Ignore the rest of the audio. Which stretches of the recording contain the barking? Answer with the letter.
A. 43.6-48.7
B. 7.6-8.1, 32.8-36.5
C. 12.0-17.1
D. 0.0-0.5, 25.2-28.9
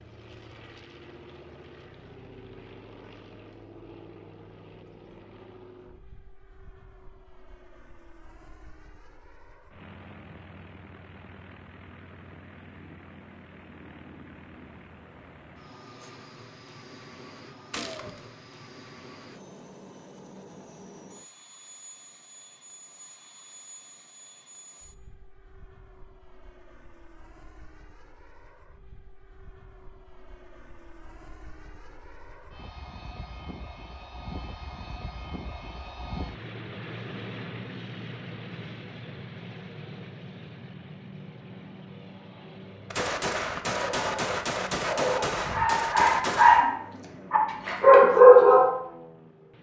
A.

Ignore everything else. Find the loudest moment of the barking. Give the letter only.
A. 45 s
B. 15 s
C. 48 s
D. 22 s
C.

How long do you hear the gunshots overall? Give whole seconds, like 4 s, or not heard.
4 s.